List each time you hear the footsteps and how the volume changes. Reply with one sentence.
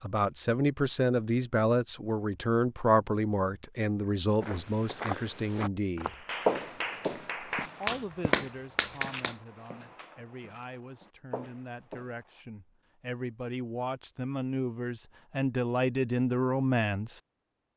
The footsteps can be heard from 4.4 to 12.4 s, getting louder then quieter.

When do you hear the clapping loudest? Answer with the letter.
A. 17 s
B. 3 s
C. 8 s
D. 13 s
C.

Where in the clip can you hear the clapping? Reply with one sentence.
You can hear the clapping from 6.0 to 9.3 s.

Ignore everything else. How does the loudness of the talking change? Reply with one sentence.
The loudness of the talking goes down, then up.